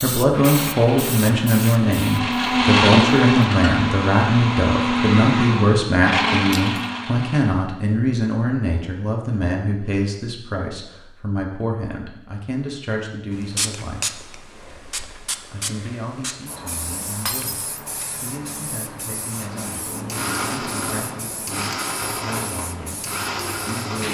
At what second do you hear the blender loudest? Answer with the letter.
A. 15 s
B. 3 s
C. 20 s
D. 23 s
B.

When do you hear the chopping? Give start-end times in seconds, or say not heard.
not heard.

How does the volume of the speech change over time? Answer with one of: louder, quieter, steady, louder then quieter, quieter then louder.
quieter.